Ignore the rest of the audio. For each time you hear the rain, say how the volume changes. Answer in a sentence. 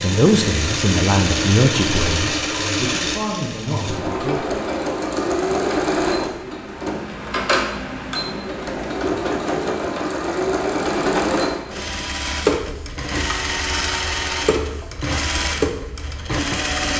You can't hear the rain here.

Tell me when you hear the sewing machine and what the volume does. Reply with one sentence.
You can hear the sewing machine from 0.0 to 16.9 s, at a steady volume.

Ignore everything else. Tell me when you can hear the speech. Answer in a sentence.
You can hear the speech from 0.0 to 4.5 s.